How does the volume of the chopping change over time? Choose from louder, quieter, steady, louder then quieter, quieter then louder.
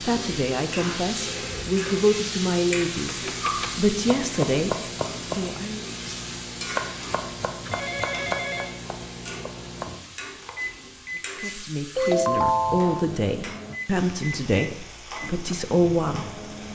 quieter.